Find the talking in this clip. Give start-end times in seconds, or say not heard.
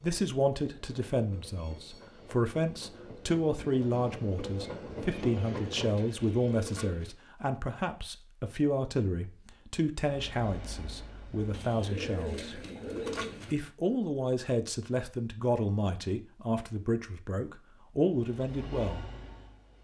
0.0-12.6, 13.5-19.1.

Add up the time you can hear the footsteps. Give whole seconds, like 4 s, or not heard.
not heard.